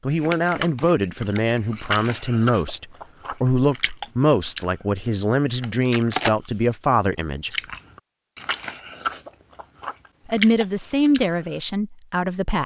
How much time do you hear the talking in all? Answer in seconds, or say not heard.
10 s.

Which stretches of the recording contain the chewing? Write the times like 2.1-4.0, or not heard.
0.2-4.7, 5.6-11.6.